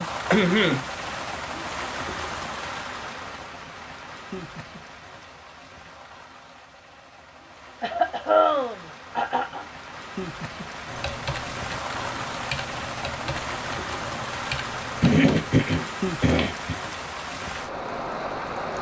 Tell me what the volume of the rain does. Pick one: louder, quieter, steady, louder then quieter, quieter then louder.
quieter then louder.